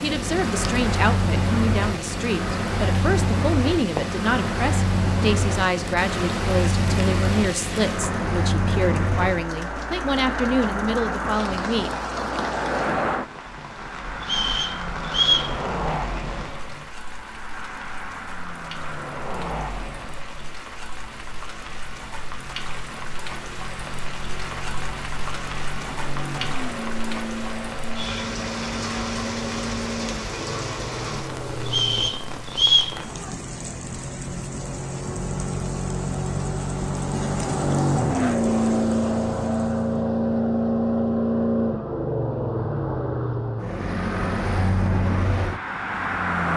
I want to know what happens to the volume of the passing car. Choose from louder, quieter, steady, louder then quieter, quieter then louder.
quieter then louder.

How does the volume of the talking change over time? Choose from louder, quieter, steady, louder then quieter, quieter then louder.
steady.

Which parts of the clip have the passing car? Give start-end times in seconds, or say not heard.
0.0-46.5.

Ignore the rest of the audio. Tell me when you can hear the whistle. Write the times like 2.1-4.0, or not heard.
14.2-15.5, 31.6-33.0.